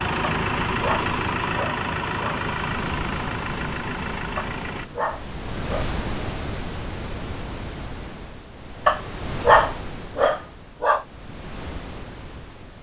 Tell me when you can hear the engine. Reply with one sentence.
You can hear the engine from 0.0 to 4.8 s.